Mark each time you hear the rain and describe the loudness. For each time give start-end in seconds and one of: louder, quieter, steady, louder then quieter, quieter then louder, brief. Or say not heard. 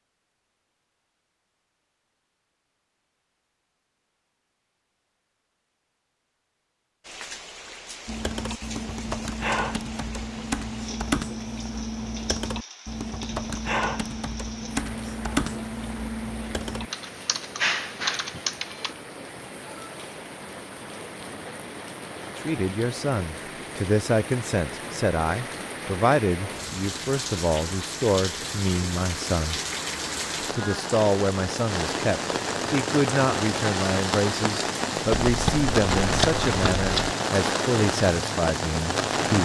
7.0-39.4 louder.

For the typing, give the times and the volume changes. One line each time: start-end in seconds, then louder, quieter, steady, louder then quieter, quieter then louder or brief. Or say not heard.
8.1-18.9 steady.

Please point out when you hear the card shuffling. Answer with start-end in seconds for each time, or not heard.
35.1-37.1.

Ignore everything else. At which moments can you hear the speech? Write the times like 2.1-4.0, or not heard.
22.4-29.6, 30.5-39.4.